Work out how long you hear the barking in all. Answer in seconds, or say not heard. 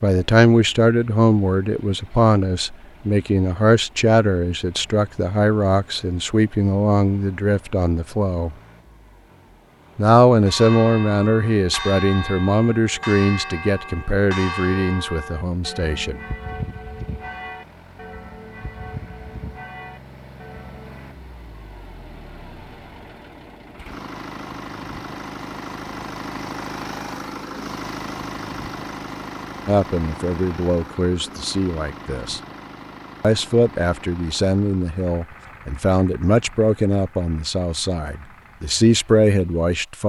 not heard.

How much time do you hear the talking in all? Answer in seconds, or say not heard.
24 s.